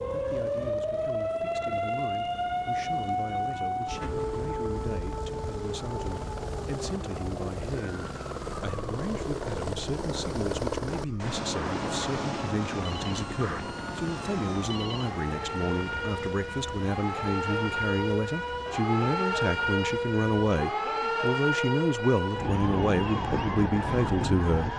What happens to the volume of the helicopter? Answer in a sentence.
The volume of the helicopter goes up, then down.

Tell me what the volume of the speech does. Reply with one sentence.
The loudness of the speech goes up.